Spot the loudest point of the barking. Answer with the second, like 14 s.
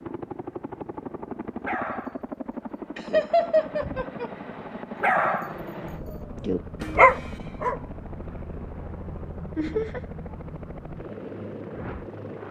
7 s.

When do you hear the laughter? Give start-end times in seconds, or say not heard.
3.0-4.3, 9.6-10.0.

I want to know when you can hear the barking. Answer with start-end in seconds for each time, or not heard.
1.6-4.2, 5.0-7.8.